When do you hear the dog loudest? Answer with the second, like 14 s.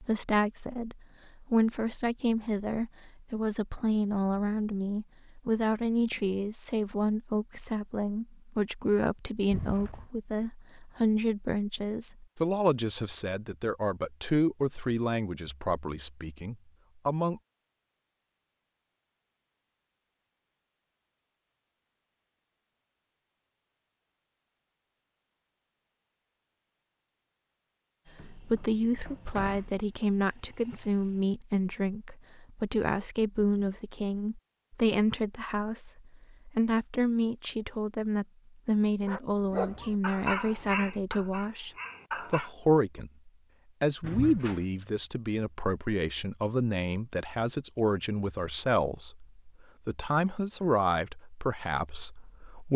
40 s.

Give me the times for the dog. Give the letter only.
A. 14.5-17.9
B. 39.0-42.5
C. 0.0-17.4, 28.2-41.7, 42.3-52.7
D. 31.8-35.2
B.